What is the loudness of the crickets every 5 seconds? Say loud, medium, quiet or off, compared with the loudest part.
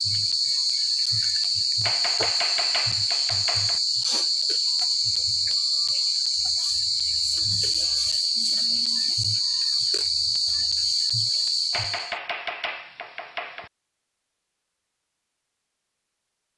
loud, loud, loud, off.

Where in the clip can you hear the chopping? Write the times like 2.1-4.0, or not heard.
1.8-3.8, 11.7-13.7.